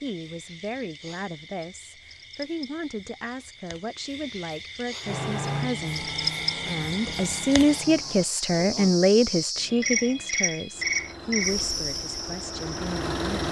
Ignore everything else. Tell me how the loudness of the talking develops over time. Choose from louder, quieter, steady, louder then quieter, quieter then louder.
louder then quieter.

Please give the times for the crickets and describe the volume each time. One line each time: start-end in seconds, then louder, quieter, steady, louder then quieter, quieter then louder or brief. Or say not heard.
0.0-13.4 louder.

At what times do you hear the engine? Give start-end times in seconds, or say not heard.
5.0-8.3, 10.7-13.4.